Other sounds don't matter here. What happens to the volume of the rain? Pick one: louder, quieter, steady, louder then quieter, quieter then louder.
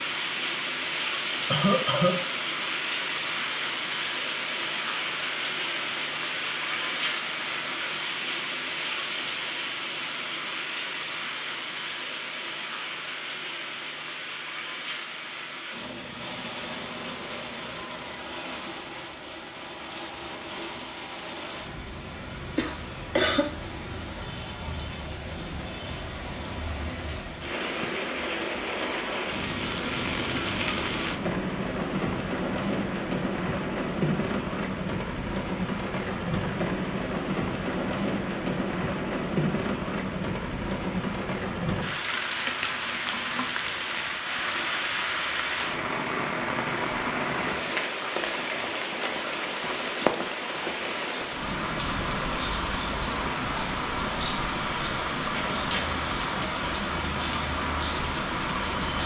quieter then louder.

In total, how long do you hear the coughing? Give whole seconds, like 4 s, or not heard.
2 s.